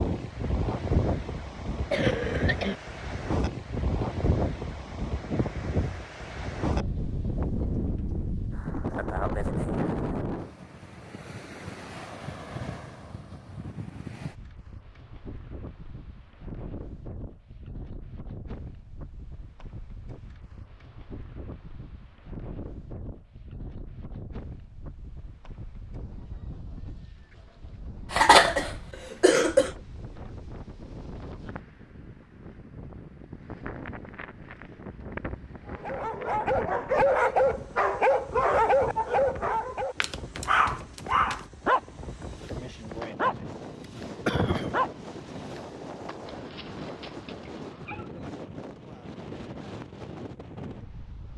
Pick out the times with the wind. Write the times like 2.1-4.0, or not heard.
0.0-51.3.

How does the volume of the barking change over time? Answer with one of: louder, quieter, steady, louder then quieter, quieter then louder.
quieter.